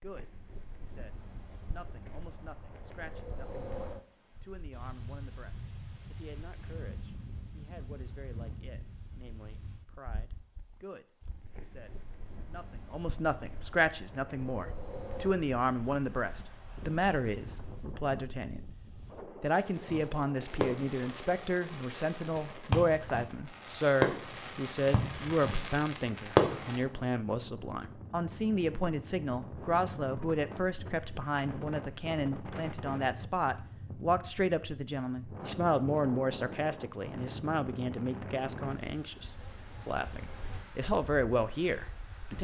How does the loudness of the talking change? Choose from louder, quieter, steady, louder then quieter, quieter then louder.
louder.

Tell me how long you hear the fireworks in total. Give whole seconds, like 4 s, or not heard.
7 s.